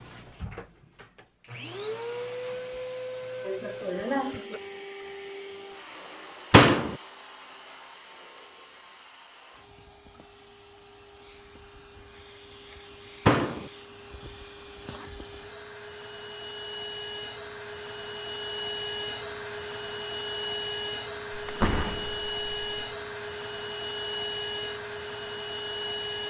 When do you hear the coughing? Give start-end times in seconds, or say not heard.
3.4-4.6.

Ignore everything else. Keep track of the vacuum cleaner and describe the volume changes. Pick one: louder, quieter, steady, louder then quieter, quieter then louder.
quieter then louder.